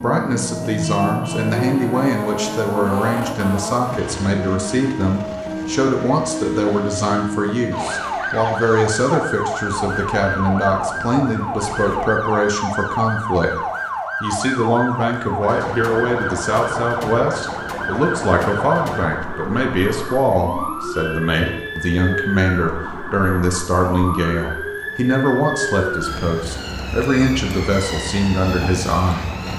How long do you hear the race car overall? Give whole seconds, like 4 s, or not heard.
12 s.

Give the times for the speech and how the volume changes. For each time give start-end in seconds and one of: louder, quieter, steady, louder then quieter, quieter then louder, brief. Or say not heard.
0.0-13.6 steady
14.2-29.4 steady.